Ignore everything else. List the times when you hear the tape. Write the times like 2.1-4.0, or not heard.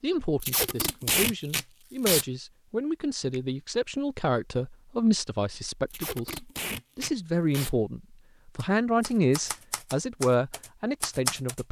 0.4-2.2, 5.9-7.7.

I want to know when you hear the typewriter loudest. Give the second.
11 s.